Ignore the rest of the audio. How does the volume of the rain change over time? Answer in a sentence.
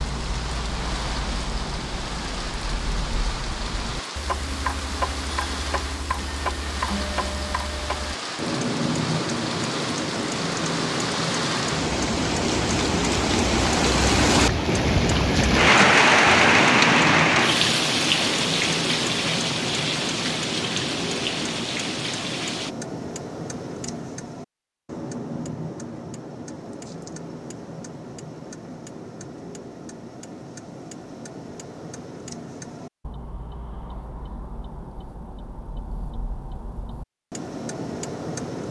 The volume of the rain goes up, then down.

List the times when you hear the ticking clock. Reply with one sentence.
You can hear the ticking clock from 0.0 to 38.6 s.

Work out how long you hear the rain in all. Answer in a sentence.
You can hear the rain for 23 seconds altogether.